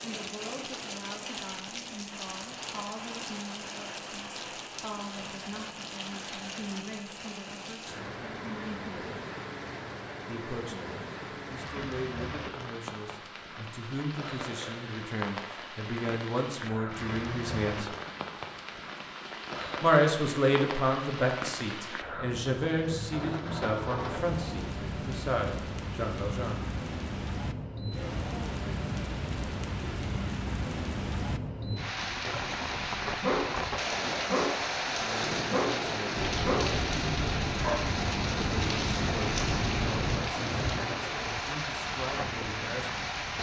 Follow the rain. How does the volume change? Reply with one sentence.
The loudness of the rain goes up.